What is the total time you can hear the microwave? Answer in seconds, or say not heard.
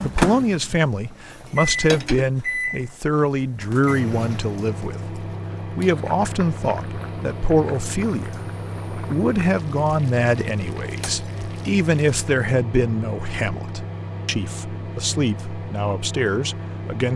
17 s.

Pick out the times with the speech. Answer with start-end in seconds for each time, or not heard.
0.0-17.1.